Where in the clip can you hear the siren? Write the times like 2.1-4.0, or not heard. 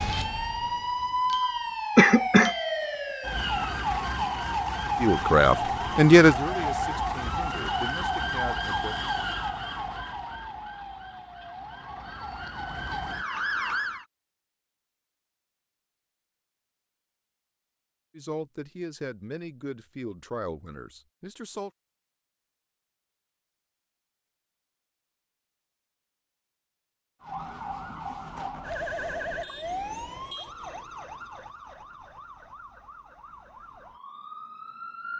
0.0-14.1, 27.2-35.1.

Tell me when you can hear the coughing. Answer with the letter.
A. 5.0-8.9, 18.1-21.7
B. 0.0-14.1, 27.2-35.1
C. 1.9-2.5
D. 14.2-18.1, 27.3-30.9
C.